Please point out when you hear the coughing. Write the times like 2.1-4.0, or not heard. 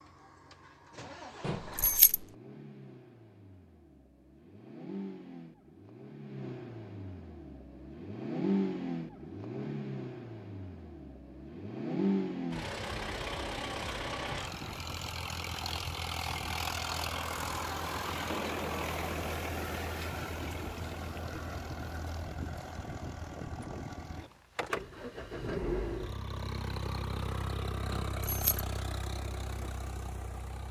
not heard.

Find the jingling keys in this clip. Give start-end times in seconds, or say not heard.
1.4-2.2, 27.9-28.6.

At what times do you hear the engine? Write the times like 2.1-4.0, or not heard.
0.0-30.6.